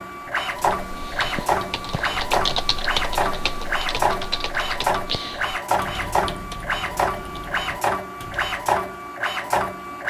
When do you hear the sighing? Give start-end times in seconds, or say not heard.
not heard.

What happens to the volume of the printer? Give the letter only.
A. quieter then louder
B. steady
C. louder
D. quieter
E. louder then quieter
B.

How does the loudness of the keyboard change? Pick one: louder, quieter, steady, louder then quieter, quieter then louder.
louder then quieter.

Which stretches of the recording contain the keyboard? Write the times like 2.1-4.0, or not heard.
0.3-8.8.